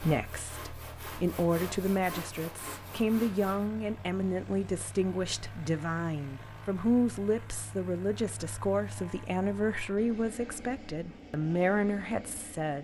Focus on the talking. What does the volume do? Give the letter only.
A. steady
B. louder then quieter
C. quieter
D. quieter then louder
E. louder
A.